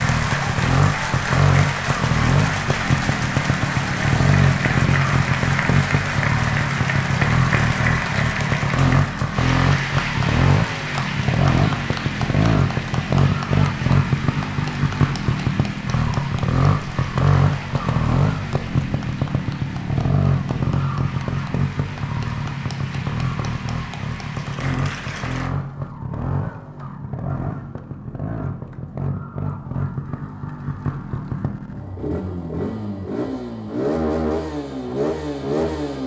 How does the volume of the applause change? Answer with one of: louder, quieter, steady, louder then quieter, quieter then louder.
quieter.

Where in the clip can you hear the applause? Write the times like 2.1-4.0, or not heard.
0.0-25.5.